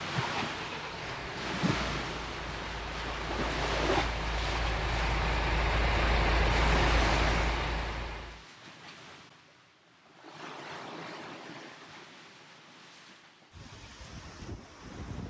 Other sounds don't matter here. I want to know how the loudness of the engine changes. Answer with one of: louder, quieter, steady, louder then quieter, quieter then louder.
louder.